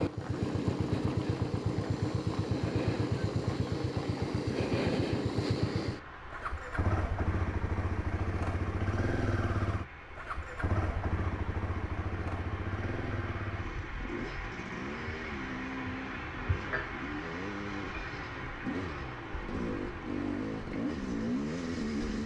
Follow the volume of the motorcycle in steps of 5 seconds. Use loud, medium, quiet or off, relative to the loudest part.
loud, loud, medium, medium, loud.